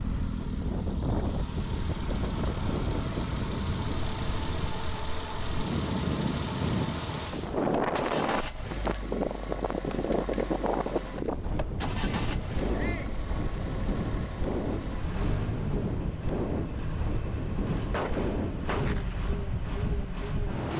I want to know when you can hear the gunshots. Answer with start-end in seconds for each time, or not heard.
17.9-19.3.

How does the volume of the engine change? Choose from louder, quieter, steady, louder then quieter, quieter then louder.
steady.